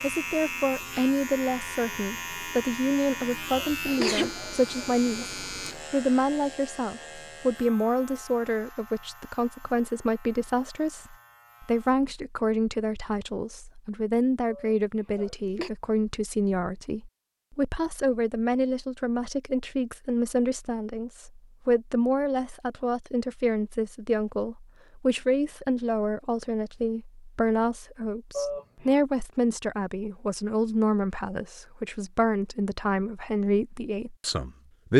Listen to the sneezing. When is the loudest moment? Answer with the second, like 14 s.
4 s.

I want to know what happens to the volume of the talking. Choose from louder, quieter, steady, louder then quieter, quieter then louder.
steady.